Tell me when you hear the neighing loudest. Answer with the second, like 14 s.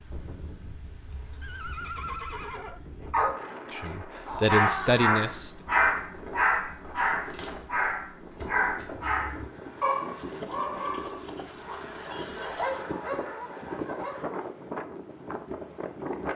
2 s.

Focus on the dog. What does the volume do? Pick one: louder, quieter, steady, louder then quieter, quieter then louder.
quieter.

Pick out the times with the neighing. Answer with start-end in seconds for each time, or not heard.
1.4-2.8, 10.2-12.8.